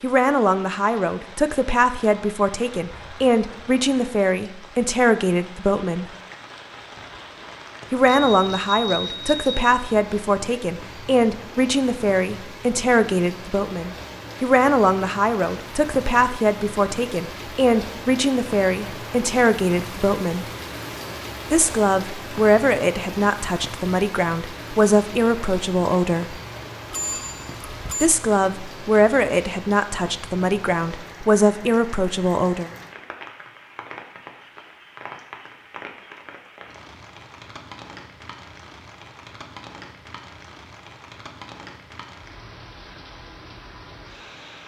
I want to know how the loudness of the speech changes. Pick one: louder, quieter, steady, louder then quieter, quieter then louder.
steady.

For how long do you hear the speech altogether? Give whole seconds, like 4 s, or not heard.
28 s.